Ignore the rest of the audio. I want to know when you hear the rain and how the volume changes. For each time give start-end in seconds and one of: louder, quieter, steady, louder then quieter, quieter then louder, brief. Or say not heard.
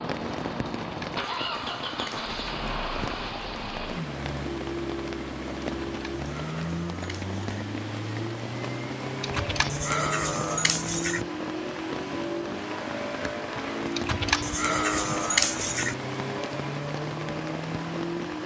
0.0-18.4 steady.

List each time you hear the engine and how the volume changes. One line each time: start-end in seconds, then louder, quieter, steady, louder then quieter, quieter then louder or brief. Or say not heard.
0.0-18.4 steady.